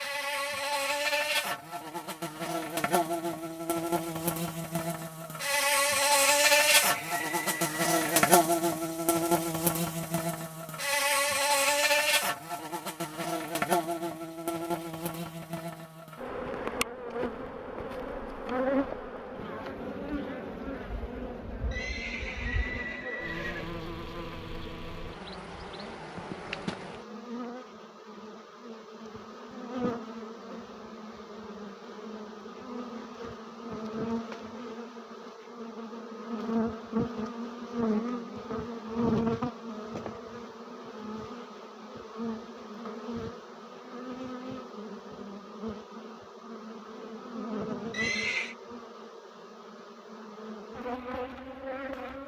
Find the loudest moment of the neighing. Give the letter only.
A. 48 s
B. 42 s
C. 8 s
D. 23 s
A.